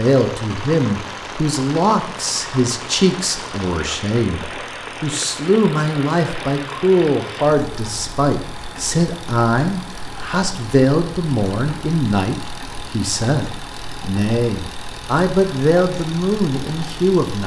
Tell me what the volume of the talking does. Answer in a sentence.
The loudness of the talking stays about the same.